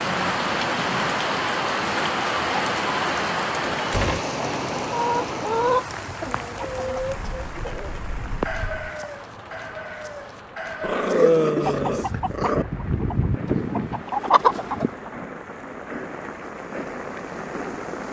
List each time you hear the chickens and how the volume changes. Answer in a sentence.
You can hear the chickens from 4.8 to 15.2 s, getting quieter then louder.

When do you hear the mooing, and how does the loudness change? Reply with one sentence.
You can't hear the mooing here.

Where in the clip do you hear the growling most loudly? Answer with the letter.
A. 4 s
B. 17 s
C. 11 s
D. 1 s
C.